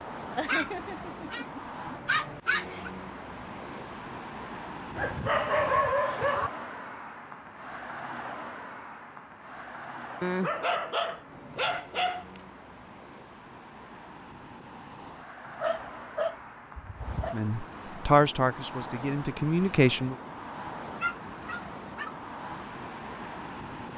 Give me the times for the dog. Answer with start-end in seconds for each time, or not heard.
0.3-2.9, 5.0-6.5, 10.2-12.4, 15.5-17.4, 20.6-22.1.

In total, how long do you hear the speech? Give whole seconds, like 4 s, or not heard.
3 s.